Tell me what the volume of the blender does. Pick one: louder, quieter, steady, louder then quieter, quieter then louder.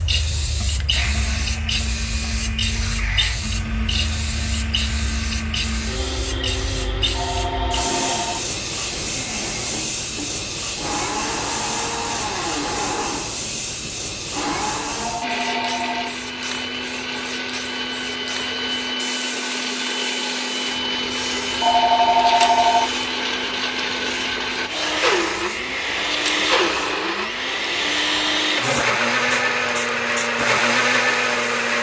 louder.